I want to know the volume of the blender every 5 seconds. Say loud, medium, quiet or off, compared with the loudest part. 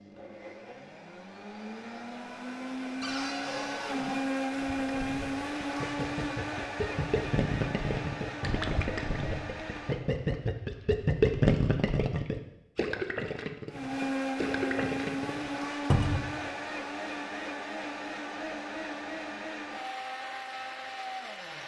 loud, loud, loud, loud, medium.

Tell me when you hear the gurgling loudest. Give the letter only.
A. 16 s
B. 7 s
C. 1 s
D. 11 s
D.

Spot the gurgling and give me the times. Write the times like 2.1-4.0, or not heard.
4.5-15.7.